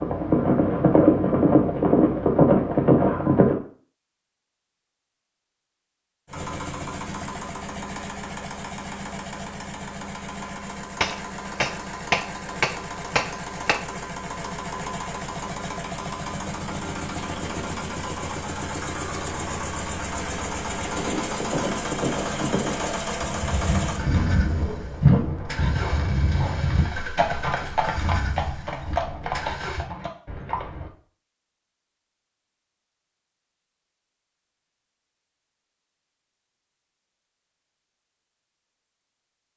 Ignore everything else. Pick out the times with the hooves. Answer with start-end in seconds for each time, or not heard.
0.0-3.5, 20.8-30.9.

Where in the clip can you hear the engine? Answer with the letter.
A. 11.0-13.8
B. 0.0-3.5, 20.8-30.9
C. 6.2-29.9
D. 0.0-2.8
C.